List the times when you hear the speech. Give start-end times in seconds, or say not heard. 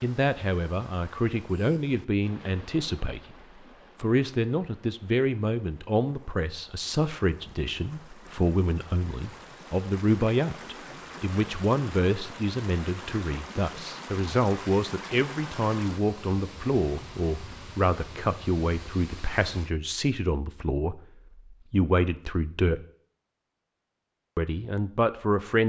0.0-3.4, 4.0-22.8, 24.4-25.6.